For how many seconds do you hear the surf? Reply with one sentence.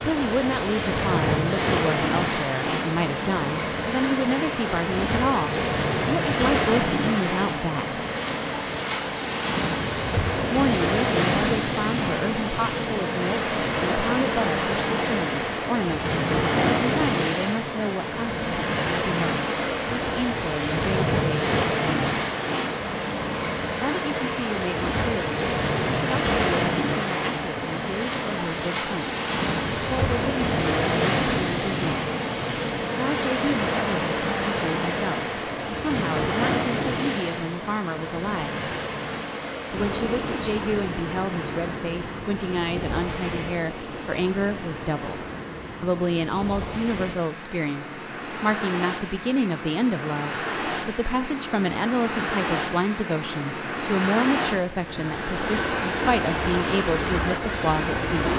The surf can be heard for 58 seconds in total.